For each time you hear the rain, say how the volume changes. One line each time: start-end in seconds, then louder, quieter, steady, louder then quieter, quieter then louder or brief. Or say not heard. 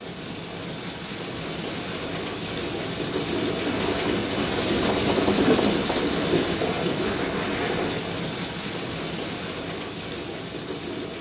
0.0-11.1 louder then quieter.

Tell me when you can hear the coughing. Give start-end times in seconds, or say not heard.
not heard.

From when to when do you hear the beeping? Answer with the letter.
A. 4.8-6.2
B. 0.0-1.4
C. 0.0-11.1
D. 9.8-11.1
A.